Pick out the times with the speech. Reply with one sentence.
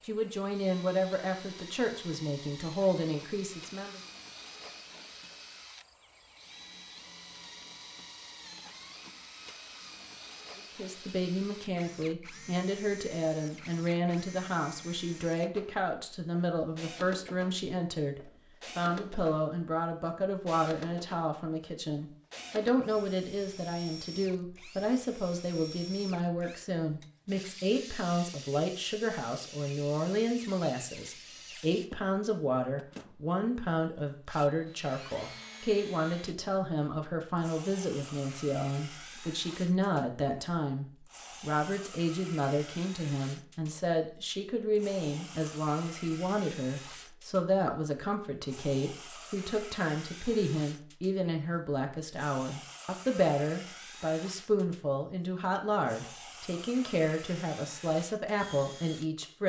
The speech can be heard from 0.1 to 4.0 s and from 10.6 to 59.4 s.